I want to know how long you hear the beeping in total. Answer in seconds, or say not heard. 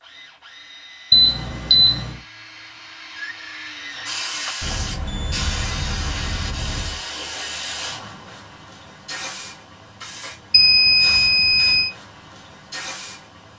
5 s.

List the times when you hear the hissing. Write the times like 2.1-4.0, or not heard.
4.0-13.5.